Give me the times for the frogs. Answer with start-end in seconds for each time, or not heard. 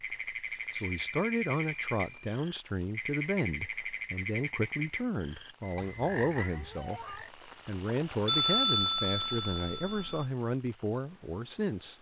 0.0-7.3.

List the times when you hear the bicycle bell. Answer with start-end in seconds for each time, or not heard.
0.5-2.4, 5.6-6.2, 8.2-10.2.